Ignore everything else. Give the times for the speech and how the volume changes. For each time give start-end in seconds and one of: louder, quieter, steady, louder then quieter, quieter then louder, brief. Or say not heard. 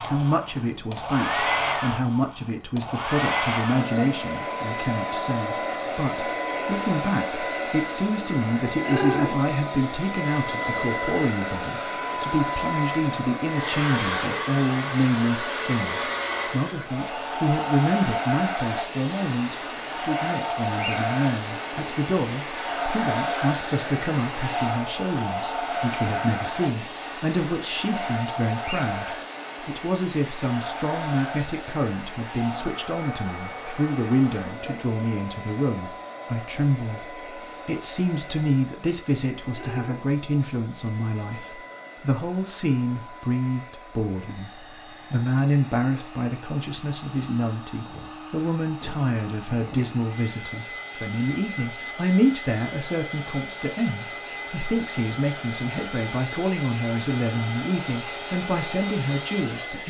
0.1-59.8 steady.